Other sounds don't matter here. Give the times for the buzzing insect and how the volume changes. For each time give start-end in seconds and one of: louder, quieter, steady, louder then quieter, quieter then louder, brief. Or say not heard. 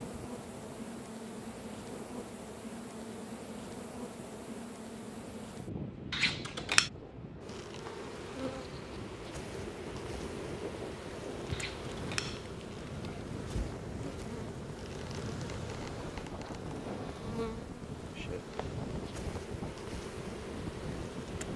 0.0-21.5 steady.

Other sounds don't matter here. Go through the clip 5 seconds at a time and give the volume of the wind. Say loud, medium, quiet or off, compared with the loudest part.
medium, medium, loud, loud, loud.